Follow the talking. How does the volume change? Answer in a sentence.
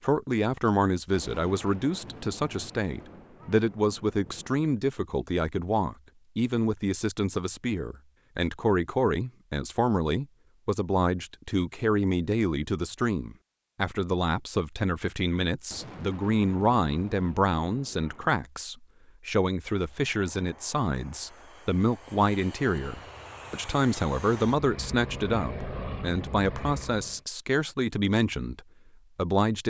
The volume of the talking stays about the same.